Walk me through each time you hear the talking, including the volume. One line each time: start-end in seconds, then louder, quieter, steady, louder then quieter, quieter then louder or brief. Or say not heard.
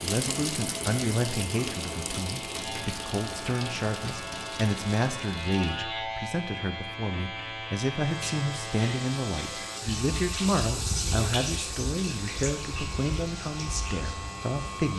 0.0-14.9 steady.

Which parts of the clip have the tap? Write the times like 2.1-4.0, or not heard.
0.0-5.7, 8.0-14.9.